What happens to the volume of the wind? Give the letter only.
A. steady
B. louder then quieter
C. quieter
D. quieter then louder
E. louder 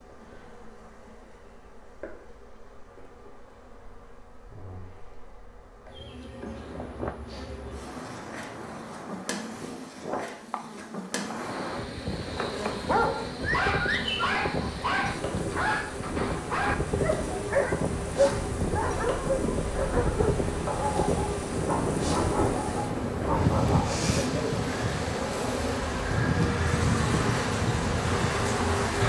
E.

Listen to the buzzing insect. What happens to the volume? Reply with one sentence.
The volume of the buzzing insect goes up.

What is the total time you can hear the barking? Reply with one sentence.
You can hear the barking for 12 seconds altogether.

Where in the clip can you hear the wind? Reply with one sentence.
You can hear the wind from 6.4 to 29.0 s.